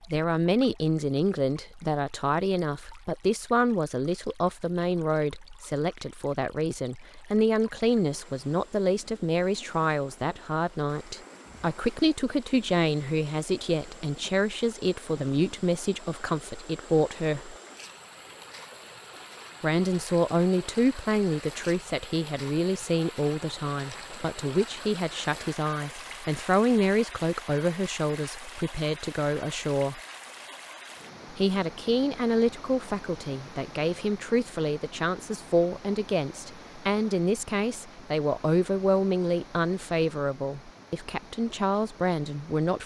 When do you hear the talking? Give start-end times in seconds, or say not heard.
0.0-17.6, 19.6-30.0, 31.3-42.8.